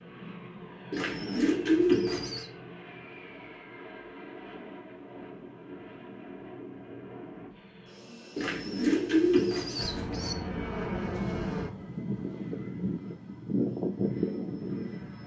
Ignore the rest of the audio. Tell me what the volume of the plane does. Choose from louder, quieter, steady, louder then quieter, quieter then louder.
louder.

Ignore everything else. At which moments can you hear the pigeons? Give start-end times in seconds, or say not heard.
0.9-2.5, 8.3-10.3.